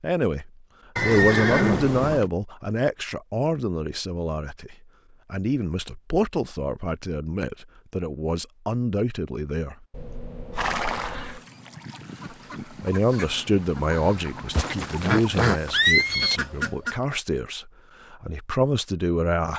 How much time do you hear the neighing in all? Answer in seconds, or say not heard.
5 s.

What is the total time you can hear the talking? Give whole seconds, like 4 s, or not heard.
17 s.